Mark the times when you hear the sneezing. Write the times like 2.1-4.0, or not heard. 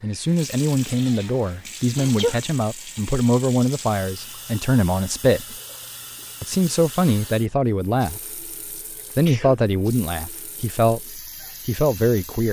1.9-2.4, 9.1-9.7.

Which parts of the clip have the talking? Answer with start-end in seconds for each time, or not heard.
0.0-5.5, 6.4-8.4, 9.2-12.4.